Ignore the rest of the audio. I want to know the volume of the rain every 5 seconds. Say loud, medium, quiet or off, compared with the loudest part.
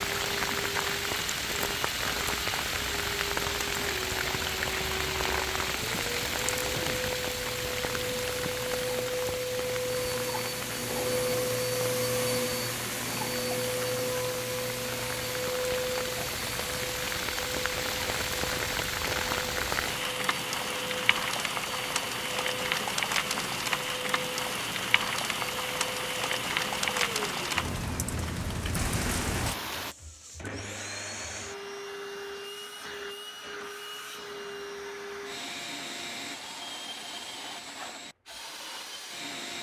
loud, loud, medium, loud, loud, loud, off, off.